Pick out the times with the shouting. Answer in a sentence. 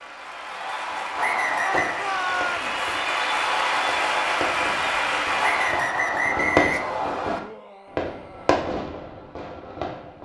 The shouting can be heard from 1.6 to 2.8 s and from 7.3 to 8.6 s.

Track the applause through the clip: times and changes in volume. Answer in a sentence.
The applause can be heard from 0.0 to 6.0 s, getting louder.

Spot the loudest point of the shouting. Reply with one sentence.
The loudest moment of the shouting is at 2 seconds.